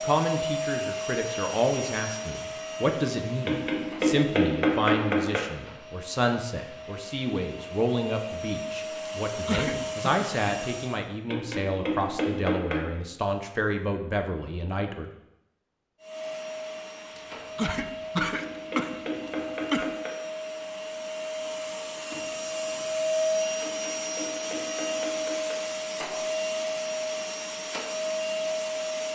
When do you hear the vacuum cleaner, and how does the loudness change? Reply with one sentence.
You can hear the vacuum cleaner from 0.0 to 11.0 s, getting quieter then louder; and from 16.0 to 29.1 s, getting louder.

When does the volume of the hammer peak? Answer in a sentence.
The loudest moment of the hammer is at 5 seconds.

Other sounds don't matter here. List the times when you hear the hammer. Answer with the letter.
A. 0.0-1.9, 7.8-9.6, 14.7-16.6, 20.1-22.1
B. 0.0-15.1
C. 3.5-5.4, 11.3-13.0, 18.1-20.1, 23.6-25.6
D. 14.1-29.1
C.